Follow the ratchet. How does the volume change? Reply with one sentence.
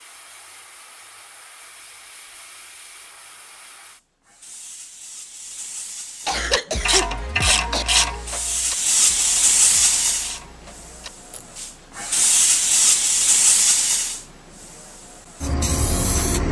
The loudness of the ratchet goes down.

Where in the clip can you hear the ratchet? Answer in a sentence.
The ratchet can be heard from 6.3 to 11.6 s.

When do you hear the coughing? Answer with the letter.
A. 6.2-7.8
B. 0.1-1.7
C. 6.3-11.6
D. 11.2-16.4
A.